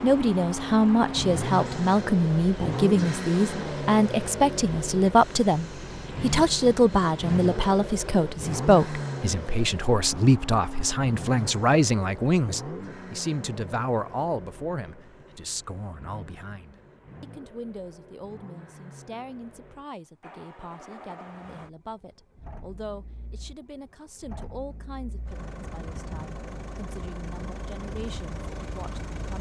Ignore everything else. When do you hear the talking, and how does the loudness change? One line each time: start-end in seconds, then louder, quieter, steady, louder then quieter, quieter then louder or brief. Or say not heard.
0.0-29.3 quieter.